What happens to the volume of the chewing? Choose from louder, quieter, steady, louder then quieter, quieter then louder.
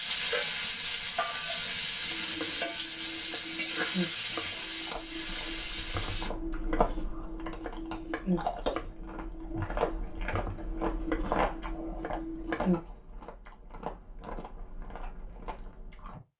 louder then quieter.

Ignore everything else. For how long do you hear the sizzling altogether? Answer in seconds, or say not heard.
6 s.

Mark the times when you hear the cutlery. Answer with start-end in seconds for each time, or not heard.
not heard.